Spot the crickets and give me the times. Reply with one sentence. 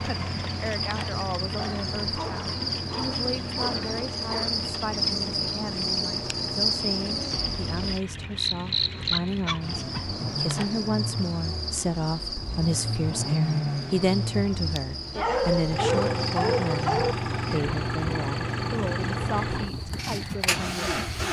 You can hear the crickets from 0.0 to 21.2 s.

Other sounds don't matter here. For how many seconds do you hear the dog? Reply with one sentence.
You can hear the dog for 6 seconds altogether.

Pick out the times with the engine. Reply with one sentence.
You can hear the engine from 0.0 to 21.2 s.